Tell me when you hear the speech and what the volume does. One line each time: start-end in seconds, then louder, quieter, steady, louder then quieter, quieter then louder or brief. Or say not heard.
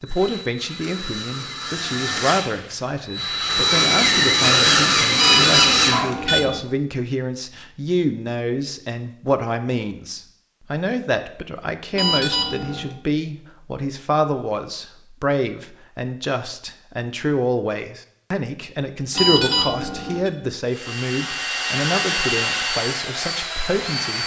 0.0-24.2 steady.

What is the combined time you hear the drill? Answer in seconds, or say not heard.
10 s.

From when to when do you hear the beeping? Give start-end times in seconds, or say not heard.
5.2-6.6, 11.9-12.9, 19.1-20.3.